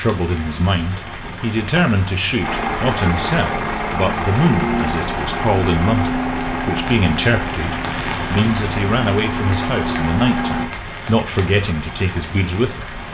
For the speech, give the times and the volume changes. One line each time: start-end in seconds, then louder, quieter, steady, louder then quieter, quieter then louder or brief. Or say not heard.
0.0-13.0 steady.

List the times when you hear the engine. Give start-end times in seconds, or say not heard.
2.4-10.7.